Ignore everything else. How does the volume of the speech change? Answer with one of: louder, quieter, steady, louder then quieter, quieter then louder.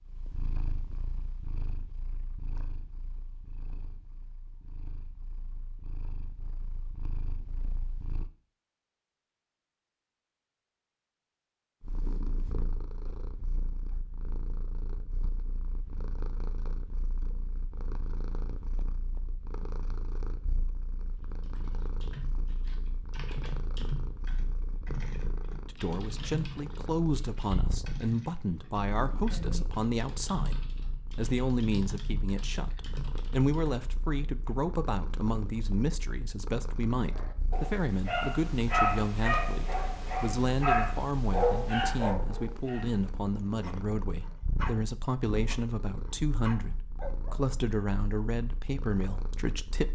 steady.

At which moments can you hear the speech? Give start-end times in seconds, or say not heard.
25.6-49.9.